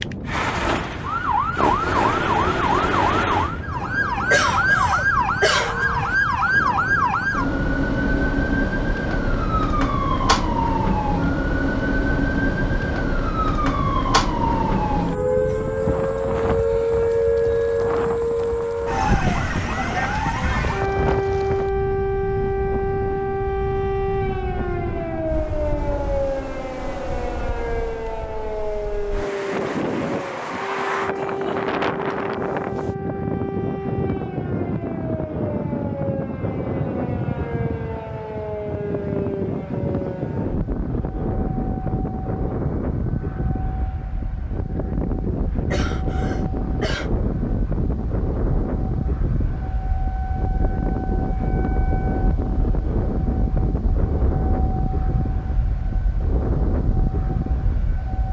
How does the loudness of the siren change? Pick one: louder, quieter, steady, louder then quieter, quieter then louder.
quieter.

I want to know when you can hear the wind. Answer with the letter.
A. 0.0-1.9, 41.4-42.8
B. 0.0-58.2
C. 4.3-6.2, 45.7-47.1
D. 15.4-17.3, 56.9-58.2
B.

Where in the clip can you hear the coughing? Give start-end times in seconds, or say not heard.
4.3-6.2, 45.7-47.1.